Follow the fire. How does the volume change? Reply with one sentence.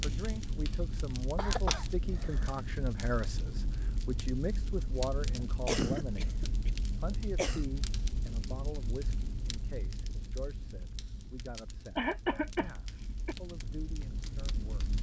The loudness of the fire goes down.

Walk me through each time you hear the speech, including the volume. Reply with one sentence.
You can hear the speech from 0.0 to 14.8 s, getting quieter.